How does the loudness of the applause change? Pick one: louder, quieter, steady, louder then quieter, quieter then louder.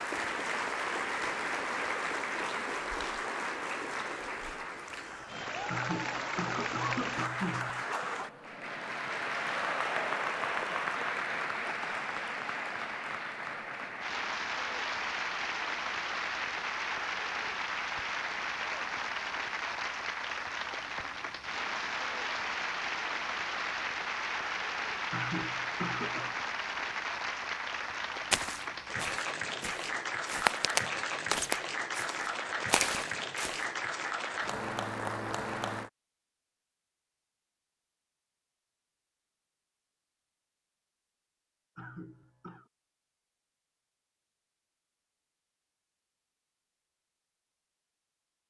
steady.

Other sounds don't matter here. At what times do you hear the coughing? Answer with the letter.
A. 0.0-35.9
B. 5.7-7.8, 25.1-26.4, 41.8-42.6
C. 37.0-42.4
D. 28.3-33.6
B.